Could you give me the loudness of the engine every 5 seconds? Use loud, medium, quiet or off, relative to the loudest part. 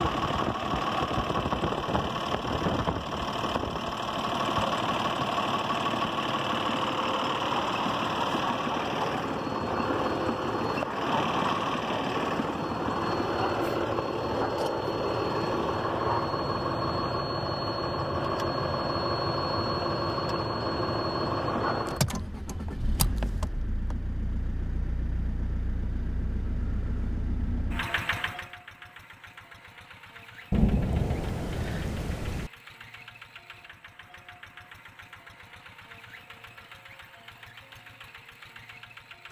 loud, loud, loud, loud, loud, medium, quiet, quiet.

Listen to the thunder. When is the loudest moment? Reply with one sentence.
The volume of the thunder peaks at 31 seconds.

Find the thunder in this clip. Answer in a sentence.
You can hear the thunder from 30.5 to 32.5 s.